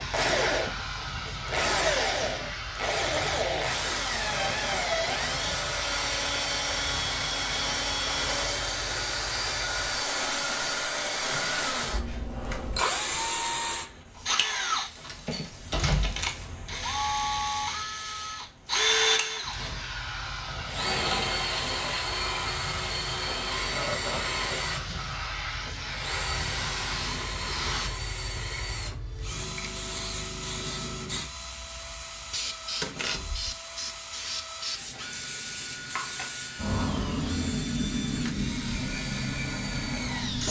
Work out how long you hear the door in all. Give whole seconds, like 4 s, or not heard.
2 s.